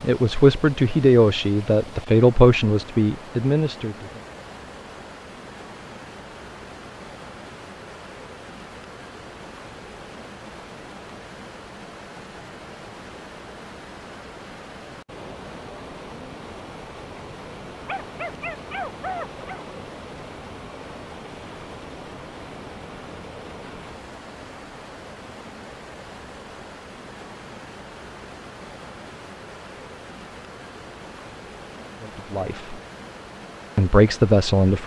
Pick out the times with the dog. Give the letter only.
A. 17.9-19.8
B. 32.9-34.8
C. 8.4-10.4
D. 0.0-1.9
A.